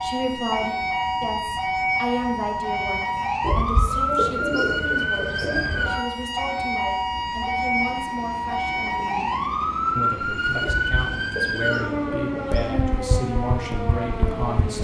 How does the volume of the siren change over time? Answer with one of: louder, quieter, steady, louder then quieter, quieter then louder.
steady.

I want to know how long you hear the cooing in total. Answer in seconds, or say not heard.
5 s.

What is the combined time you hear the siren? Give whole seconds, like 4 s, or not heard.
15 s.